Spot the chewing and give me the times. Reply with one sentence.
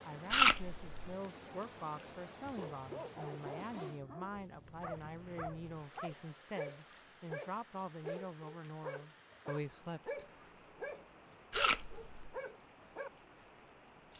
You can hear the chewing from 0.3 to 0.9 s and from 11.5 to 12.3 s.